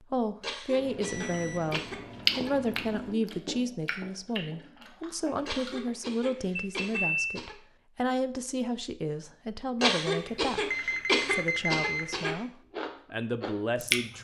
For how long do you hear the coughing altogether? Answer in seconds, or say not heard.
7 s.